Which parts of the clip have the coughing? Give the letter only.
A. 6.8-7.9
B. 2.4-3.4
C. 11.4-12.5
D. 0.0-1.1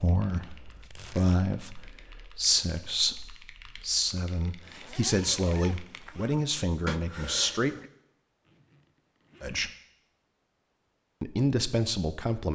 A.